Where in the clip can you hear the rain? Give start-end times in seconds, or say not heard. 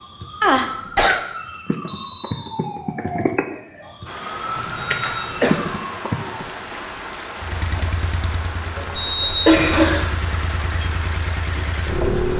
4.0-12.3.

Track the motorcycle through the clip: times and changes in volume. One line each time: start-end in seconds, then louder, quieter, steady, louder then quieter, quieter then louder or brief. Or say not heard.
7.3-12.3 quieter then louder.